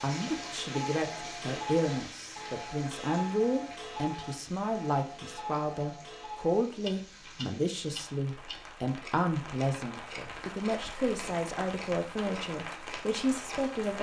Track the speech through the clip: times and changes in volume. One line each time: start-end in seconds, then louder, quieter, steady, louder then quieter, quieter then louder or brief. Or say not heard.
0.0-13.9 steady.